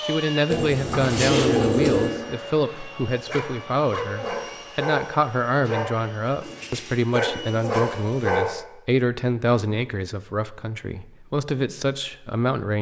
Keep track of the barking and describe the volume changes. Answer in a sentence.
The loudness of the barking goes down, then up.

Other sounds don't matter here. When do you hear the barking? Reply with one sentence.
You can hear the barking from 3.1 to 8.6 s.